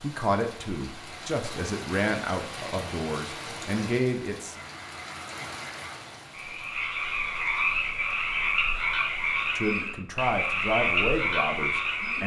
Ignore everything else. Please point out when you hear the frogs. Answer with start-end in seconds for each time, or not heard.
4.5-12.2.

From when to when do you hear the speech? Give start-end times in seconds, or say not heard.
0.0-4.6, 9.6-12.2.